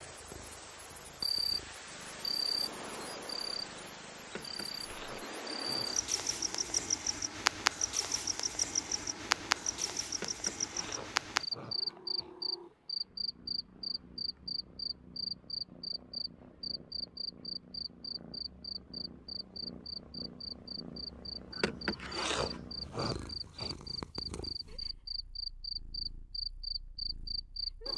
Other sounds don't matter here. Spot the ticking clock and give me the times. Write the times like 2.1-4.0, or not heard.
not heard.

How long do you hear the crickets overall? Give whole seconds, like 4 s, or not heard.
28 s.